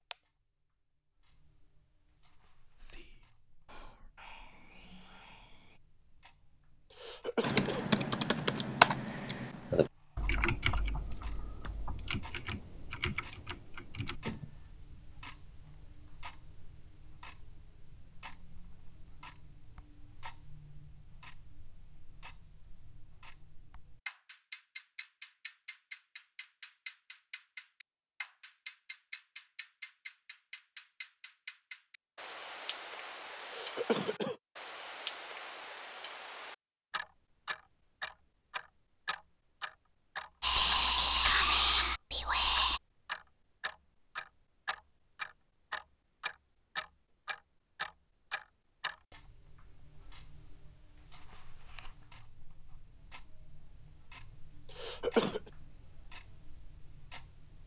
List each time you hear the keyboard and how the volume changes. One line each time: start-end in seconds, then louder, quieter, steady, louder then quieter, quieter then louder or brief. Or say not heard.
7.4-14.6 quieter.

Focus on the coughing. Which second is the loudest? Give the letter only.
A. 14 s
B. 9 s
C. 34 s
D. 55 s
D.